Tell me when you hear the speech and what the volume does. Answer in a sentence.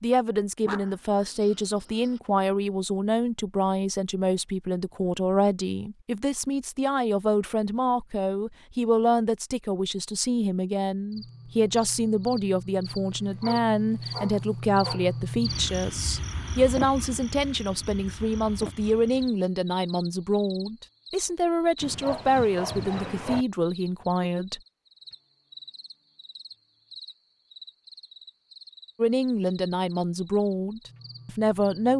You can hear the speech from 0.0 to 24.6 s, at a steady volume; and briefly from 28.9 to 31.9 s.